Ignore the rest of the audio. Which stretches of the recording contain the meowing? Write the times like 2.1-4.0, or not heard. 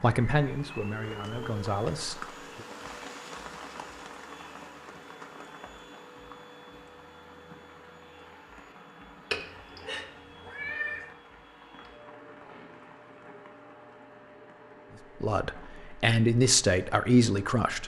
9.3-11.1.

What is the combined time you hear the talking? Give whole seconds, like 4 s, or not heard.
5 s.